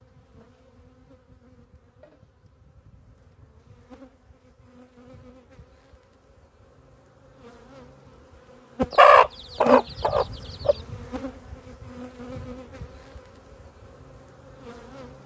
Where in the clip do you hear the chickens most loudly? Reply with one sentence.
The loudest moment of the chickens is at 9 seconds.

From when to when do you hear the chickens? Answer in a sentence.
You can hear the chickens from 8.9 to 10.8 s.